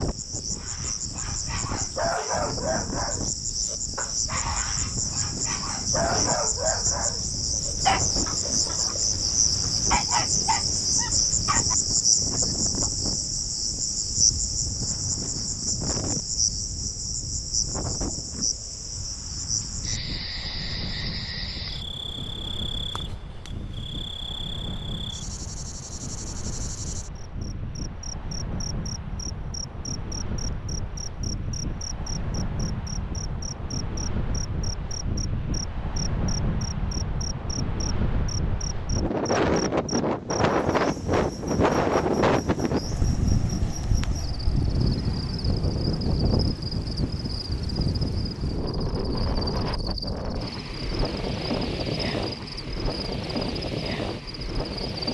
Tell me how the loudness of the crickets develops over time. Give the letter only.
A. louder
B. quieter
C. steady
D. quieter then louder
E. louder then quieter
B.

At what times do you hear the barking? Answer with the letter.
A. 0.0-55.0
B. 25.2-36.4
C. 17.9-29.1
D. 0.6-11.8
D.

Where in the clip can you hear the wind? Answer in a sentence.
The wind can be heard from 0.0 to 55.0 s.